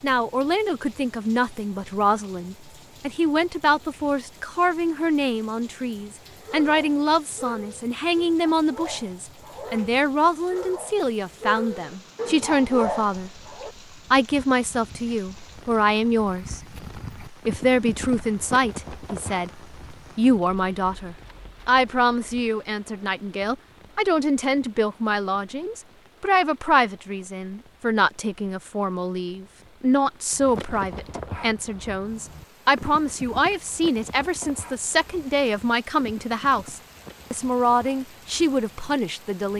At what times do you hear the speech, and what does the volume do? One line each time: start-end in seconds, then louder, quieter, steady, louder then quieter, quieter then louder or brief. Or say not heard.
0.0-13.3 steady
14.1-16.6 brief
17.2-39.5 steady.